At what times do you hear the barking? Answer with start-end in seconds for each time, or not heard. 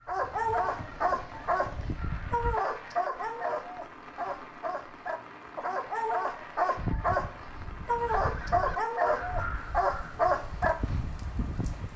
0.1-10.8.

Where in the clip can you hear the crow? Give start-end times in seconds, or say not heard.
0.0-2.5, 6.8-11.9.